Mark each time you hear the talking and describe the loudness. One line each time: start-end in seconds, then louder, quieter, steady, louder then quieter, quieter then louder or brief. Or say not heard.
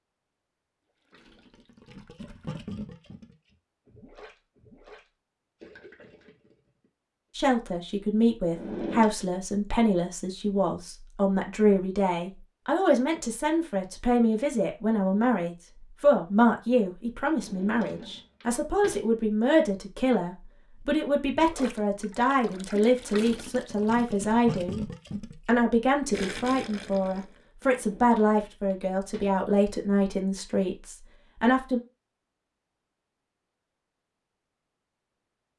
7.3-31.8 steady.